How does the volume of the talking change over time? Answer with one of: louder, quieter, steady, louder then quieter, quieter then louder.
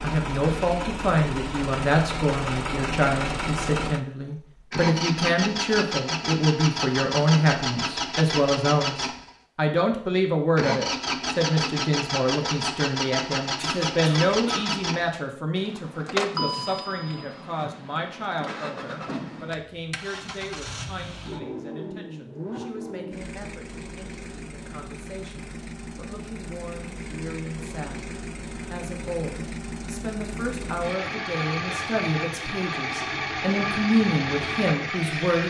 quieter then louder.